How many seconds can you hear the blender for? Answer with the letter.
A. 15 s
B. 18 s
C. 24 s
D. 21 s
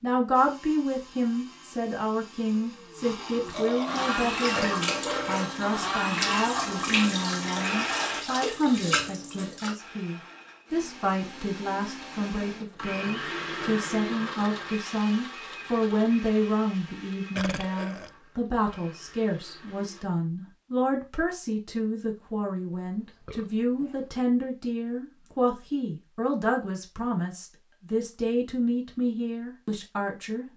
B.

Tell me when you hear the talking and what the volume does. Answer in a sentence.
The talking can be heard from 0.0 to 30.5 s, at a steady volume.